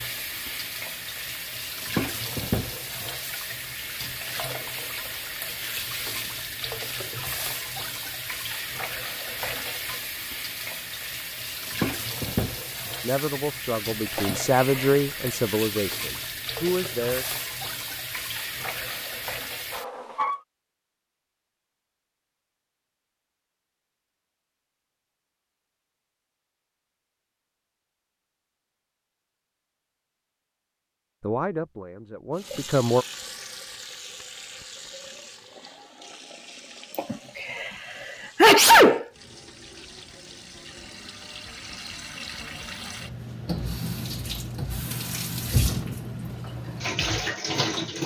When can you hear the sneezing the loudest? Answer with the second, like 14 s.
39 s.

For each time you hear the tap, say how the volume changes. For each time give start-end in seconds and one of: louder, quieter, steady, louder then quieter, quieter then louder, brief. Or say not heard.
0.0-20.4 steady
32.4-48.0 quieter then louder.